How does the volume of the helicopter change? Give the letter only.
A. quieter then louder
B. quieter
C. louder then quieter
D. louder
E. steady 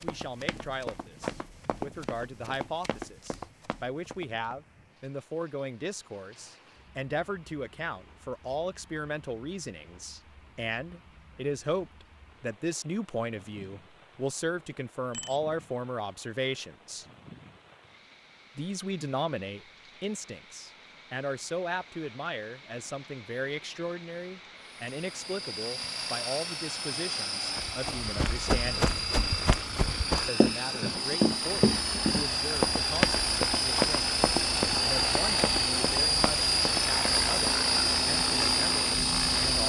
D.